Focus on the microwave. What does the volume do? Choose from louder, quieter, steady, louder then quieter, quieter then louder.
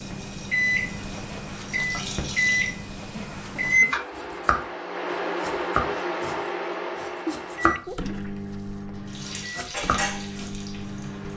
quieter.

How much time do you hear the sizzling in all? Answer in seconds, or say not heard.
5 s.